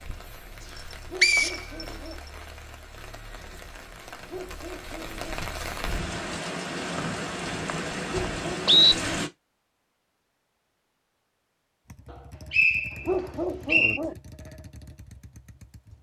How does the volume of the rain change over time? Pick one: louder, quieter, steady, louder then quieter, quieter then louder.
louder.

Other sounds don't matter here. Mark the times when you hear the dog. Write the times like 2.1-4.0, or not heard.
1.1-2.2, 4.2-5.4, 8.1-9.1, 13.1-14.2.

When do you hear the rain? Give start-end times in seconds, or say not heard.
0.0-9.3.